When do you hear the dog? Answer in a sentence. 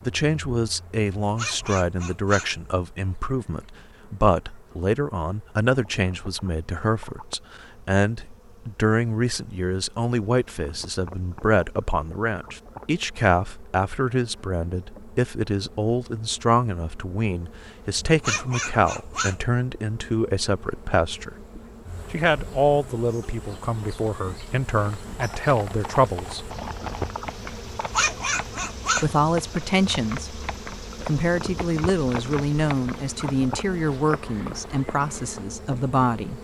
You can hear the dog from 1.1 to 2.6 s, from 18.0 to 19.4 s and from 27.8 to 29.2 s.